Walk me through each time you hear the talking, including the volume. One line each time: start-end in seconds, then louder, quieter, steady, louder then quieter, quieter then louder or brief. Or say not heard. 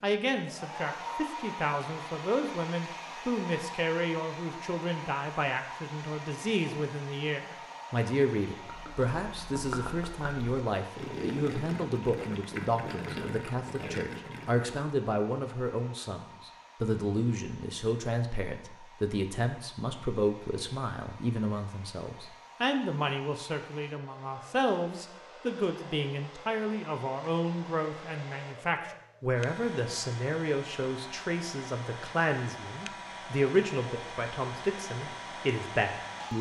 0.0-36.3 steady.